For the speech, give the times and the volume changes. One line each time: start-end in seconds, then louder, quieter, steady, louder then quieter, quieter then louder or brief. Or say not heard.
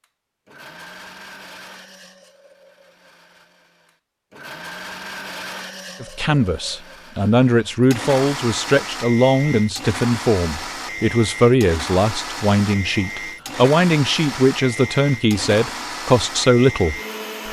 6.0-17.4 steady.